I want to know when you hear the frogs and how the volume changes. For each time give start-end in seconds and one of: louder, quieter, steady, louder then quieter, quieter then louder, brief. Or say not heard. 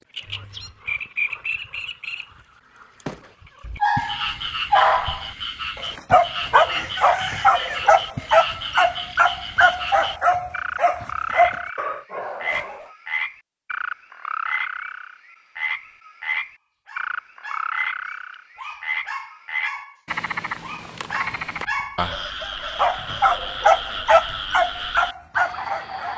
0.1-26.1 steady.